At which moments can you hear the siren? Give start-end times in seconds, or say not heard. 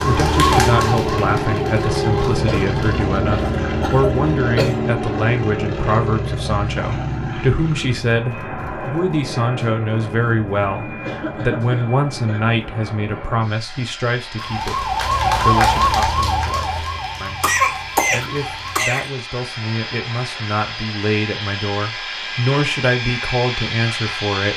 0.0-3.0, 14.3-18.9.